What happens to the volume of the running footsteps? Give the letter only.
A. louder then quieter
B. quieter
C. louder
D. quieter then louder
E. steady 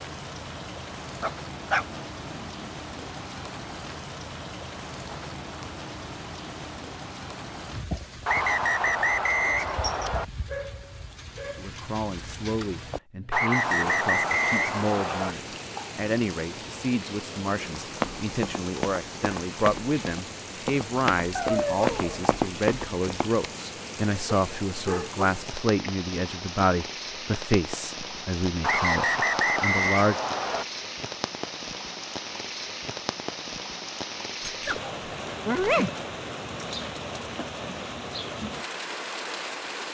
C.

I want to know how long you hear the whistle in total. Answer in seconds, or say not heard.
6 s.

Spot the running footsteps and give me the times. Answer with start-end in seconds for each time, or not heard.
17.8-23.4.